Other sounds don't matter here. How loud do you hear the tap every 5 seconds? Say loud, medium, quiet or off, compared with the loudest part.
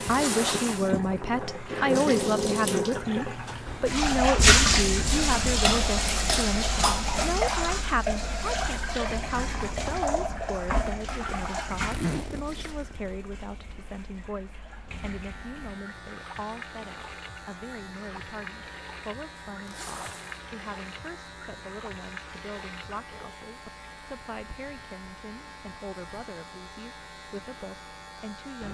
loud, loud, medium, quiet, quiet, quiet.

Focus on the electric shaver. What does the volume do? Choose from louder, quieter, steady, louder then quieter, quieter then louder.
steady.